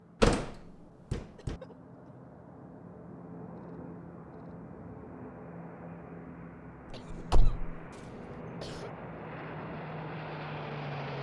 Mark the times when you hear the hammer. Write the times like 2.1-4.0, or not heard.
not heard.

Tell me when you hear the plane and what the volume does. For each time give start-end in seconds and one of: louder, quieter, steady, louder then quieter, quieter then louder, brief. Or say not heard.
0.0-11.1 louder.